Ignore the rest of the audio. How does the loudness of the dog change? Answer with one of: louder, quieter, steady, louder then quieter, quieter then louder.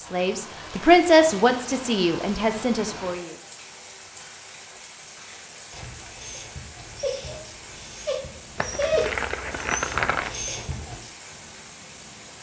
louder then quieter.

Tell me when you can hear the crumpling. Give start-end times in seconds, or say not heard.
8.6-10.3.